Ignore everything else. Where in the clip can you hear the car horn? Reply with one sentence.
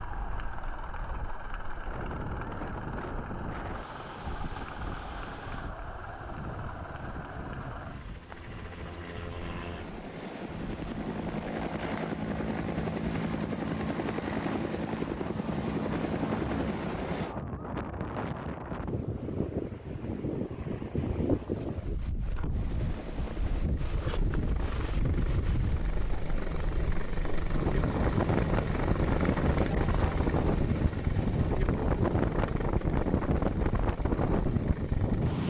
You can't hear the car horn here.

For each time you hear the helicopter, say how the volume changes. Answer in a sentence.
You can hear the helicopter from 0.0 to 17.4 s, getting louder; and from 22.5 to 35.4 s, getting louder then quieter.